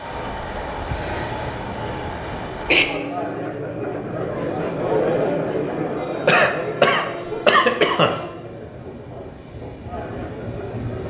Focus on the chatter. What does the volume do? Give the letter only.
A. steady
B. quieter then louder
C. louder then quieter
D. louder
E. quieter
C.